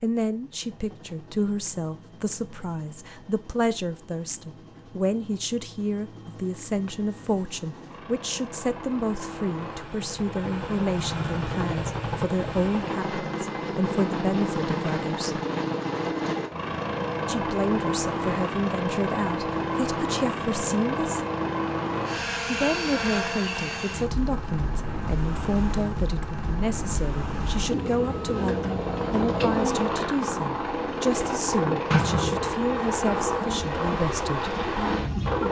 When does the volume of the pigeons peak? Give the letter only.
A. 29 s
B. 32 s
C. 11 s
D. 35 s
B.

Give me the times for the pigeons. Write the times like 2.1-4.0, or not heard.
27.6-35.4.